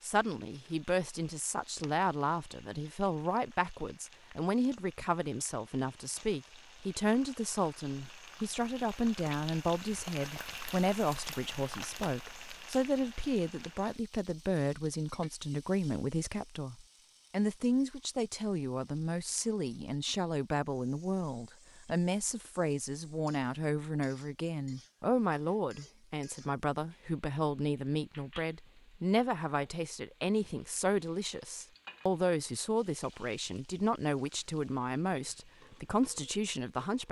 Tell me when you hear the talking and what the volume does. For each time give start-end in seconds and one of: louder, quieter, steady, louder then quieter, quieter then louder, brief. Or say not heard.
0.0-37.0 steady.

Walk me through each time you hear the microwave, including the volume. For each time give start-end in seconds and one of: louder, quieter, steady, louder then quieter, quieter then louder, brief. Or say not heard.
not heard.